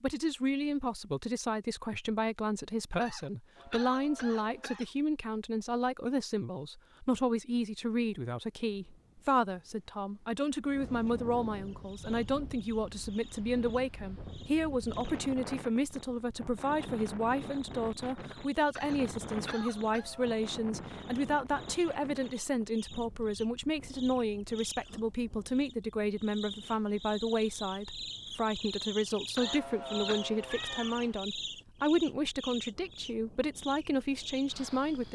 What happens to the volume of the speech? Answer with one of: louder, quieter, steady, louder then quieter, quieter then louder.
steady.